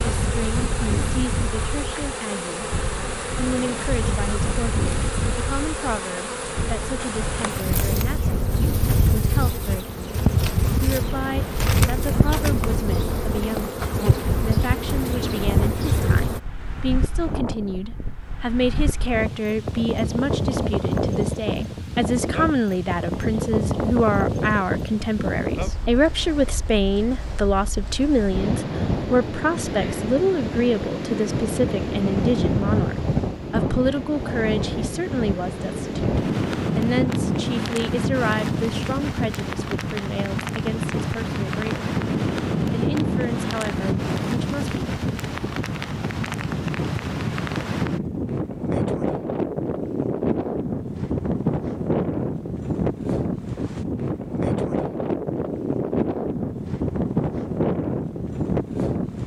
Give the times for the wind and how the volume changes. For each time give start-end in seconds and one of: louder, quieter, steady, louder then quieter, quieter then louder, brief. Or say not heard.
0.0-59.2 louder.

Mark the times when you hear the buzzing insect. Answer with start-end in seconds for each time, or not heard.
0.0-16.4.